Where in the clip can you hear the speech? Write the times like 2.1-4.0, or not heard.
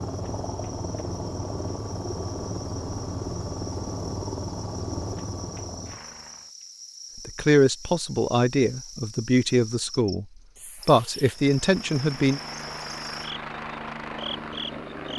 7.2-10.2, 10.8-12.4.